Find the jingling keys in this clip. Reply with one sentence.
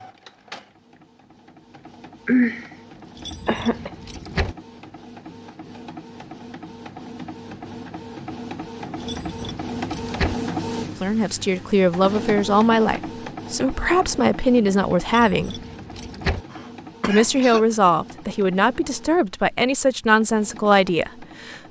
The jingling keys can be heard from 3.1 to 4.5 s, from 9.0 to 10.3 s and from 15.1 to 16.4 s.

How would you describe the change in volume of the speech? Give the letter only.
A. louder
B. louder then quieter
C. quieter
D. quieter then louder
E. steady
E.